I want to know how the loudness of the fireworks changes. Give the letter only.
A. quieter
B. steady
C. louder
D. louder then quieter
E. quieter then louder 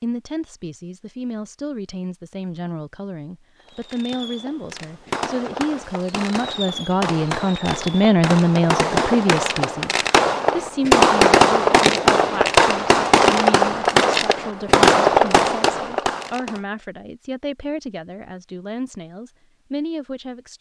C.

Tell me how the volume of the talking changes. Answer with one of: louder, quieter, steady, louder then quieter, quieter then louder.
louder then quieter.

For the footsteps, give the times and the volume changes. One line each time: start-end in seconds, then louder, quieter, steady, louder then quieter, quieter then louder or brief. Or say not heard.
not heard.